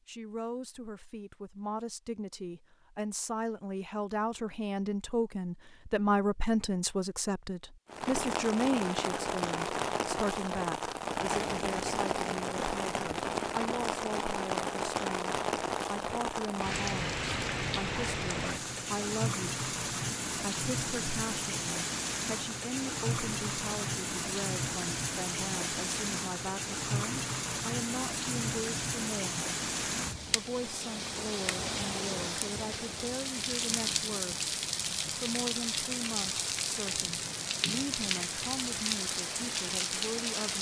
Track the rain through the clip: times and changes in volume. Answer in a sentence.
The rain can be heard from 7.8 to 40.5 s, at a steady volume.